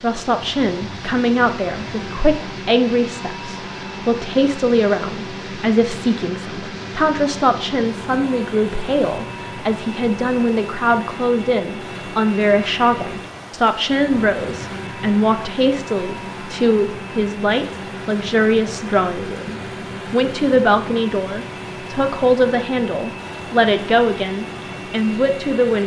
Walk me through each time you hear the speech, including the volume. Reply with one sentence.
You can hear the speech from 0.0 to 25.8 s, at a steady volume.